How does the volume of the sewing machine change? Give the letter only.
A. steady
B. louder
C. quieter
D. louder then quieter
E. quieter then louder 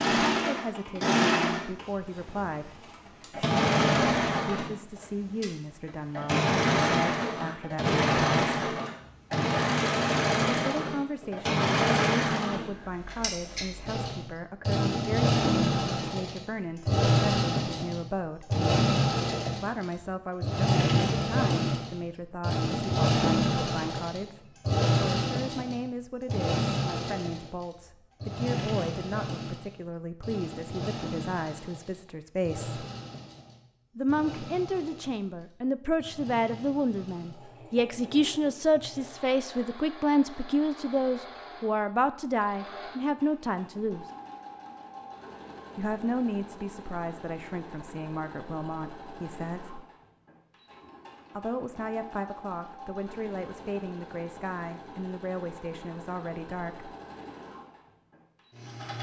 C.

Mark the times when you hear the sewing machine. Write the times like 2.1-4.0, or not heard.
0.0-58.9.